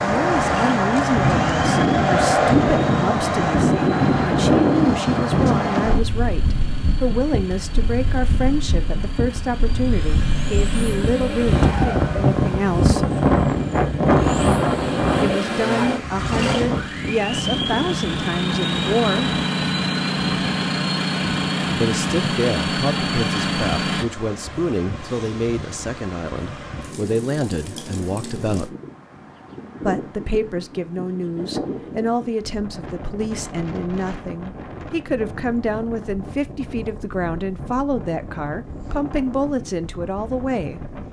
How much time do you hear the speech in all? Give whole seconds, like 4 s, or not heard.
35 s.